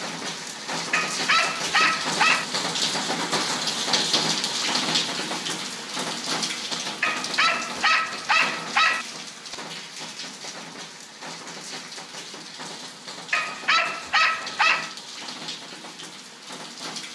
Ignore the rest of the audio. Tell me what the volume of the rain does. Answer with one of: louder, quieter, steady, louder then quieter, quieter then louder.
quieter.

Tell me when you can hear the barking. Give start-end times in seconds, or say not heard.
0.9-2.5, 7.0-9.1, 13.3-14.9.